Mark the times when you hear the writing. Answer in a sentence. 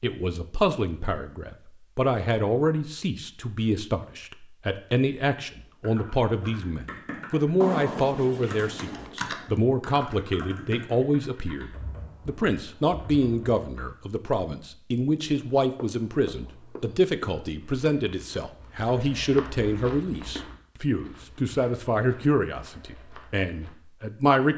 The writing can be heard from 7.6 to 9.1 s and from 15.3 to 17.4 s.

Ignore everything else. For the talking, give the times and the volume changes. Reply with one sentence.
You can hear the talking from 0.0 to 24.5 s, at a steady volume.